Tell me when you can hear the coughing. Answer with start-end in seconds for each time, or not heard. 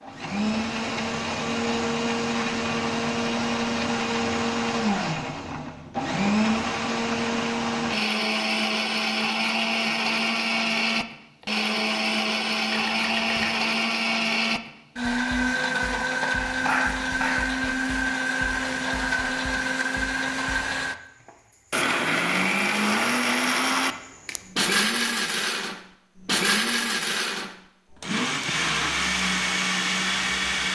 12.7-13.7, 16.5-17.5.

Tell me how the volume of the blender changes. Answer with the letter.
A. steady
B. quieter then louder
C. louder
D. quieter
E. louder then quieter
A.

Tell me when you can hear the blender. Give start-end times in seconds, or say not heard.
0.0-30.6.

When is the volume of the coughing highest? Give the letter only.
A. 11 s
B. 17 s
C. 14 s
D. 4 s
B.